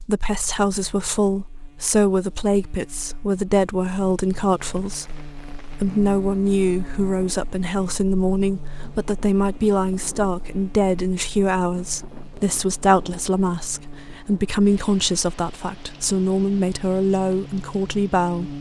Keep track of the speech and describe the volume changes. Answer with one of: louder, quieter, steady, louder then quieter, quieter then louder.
steady.